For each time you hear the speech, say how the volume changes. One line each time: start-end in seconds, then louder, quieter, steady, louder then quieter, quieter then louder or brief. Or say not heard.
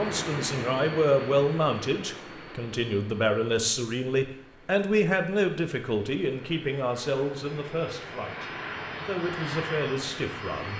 0.0-10.7 quieter.